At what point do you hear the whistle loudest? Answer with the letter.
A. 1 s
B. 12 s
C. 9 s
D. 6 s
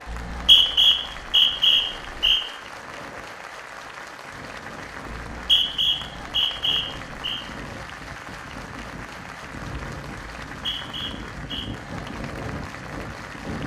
A.